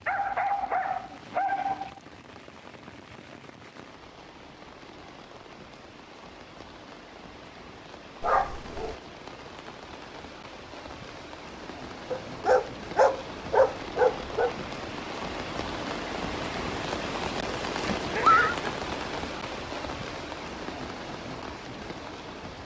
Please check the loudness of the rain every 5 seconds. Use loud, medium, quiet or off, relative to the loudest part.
quiet, quiet, medium, loud, medium.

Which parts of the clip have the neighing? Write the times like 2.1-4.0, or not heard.
17.8-18.6.